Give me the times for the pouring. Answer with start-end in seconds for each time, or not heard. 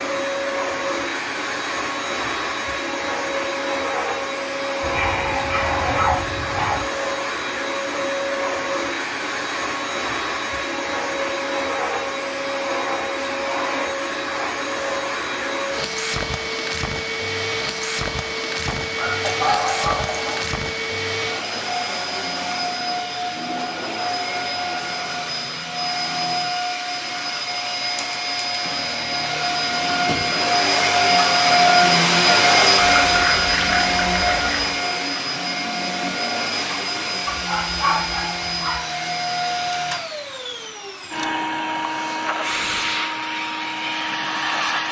18.6-20.6, 32.8-34.5.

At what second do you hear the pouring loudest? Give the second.
33 s.